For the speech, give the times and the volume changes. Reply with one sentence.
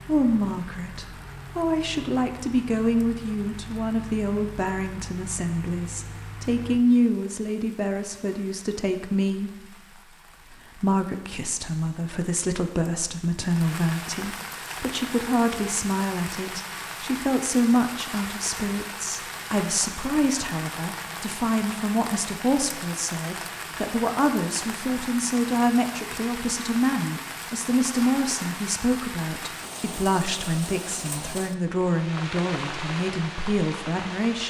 The speech can be heard from 0.0 to 34.4 s, at a steady volume.